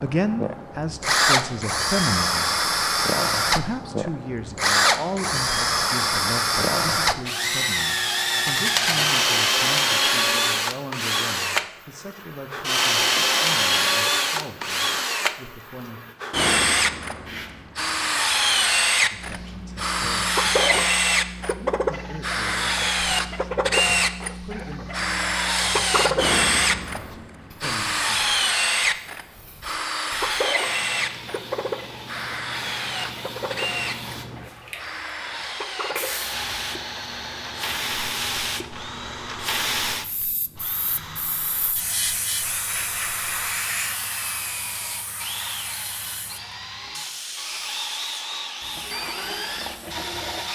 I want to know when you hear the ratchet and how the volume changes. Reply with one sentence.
The ratchet can't be heard in this clip.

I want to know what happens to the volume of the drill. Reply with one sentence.
The loudness of the drill goes down.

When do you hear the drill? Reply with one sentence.
You can hear the drill from 0.0 to 50.5 s.